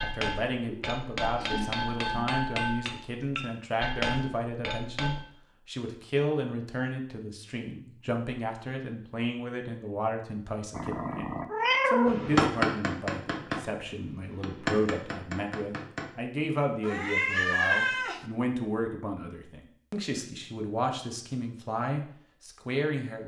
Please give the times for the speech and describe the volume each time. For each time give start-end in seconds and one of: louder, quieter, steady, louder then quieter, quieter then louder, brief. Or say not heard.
0.0-23.2 steady.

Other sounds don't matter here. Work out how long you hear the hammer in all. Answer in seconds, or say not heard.
9 s.